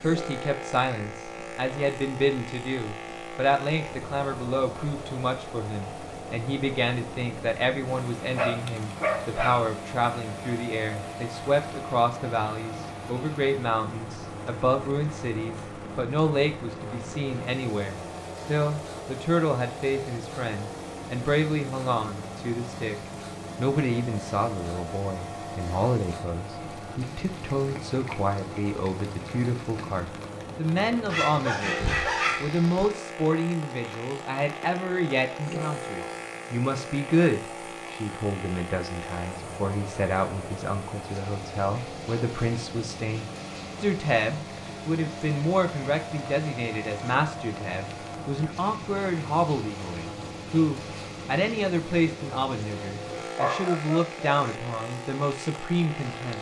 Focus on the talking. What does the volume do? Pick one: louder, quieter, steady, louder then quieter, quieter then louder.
steady.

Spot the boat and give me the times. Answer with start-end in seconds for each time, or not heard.
0.0-56.3.